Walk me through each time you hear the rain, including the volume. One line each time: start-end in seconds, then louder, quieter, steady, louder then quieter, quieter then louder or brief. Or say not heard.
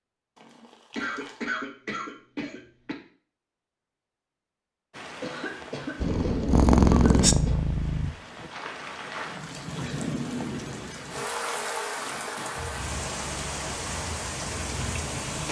4.9-15.4 louder.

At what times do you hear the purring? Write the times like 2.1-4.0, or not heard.
6.0-8.1, 12.6-15.4.